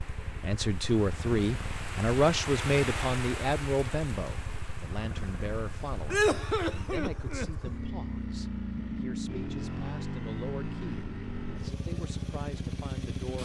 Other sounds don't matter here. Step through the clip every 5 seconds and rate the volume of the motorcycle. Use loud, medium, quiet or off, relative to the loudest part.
medium, loud, loud.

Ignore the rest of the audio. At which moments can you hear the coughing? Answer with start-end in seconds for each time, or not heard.
6.1-7.7.